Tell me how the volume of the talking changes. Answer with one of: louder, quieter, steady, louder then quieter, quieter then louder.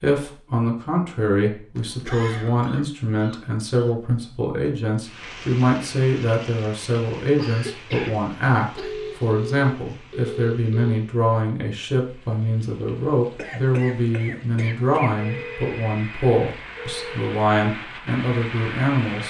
steady.